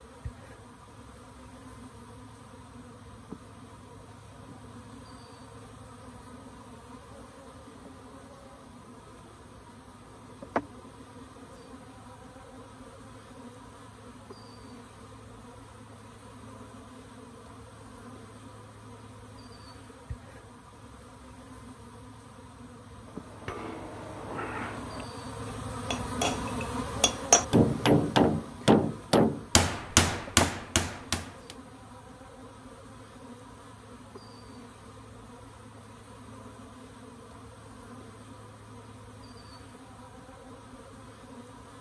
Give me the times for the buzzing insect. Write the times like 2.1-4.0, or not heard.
0.0-41.7.